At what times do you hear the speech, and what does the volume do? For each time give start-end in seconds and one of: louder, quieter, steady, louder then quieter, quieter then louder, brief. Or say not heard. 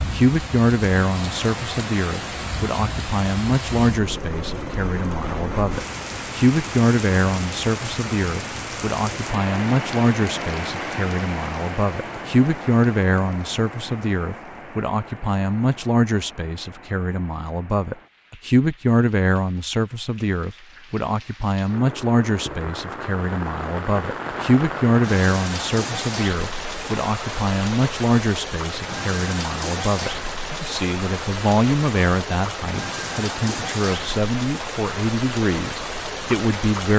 0.0-36.9 steady.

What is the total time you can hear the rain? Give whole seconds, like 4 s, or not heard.
37 s.